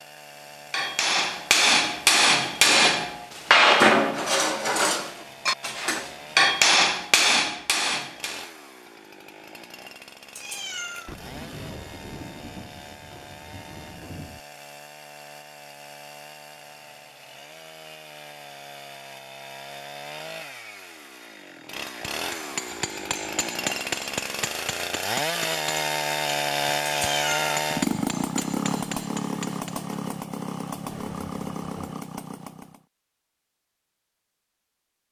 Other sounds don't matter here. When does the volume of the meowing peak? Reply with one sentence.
The loudest moment of the meowing is at 27 seconds.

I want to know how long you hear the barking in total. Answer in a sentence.
You can't hear the barking here.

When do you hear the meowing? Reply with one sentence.
The meowing can be heard from 10.3 to 11.2 s and from 26.9 to 27.6 s.